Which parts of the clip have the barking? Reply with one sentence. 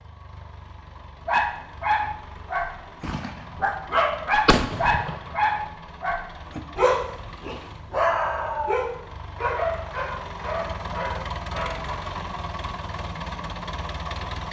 You can hear the barking from 1.2 to 12.0 s.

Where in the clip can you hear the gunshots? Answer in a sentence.
You can hear the gunshots from 3.0 to 3.5 s and from 4.5 to 5.3 s.